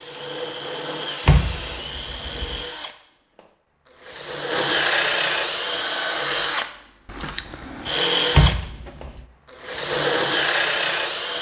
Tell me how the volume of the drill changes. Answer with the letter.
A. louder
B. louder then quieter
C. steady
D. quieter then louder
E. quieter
A.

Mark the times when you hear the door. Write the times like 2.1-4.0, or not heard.
1.2-2.6, 8.3-9.2.